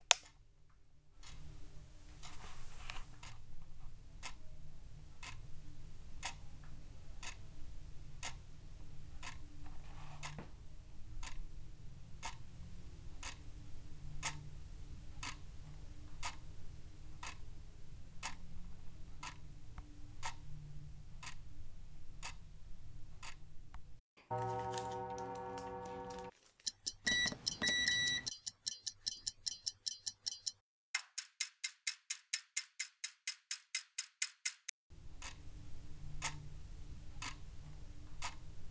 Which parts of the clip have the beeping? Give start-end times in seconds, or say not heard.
27.1-28.3.